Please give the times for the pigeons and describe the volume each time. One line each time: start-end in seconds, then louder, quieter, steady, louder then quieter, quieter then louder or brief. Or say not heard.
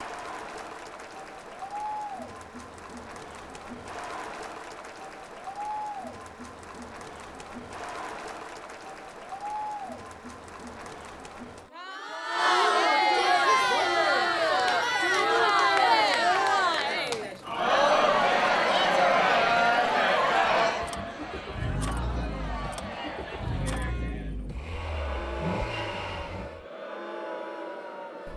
not heard.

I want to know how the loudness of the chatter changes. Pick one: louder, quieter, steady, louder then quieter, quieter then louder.
louder then quieter.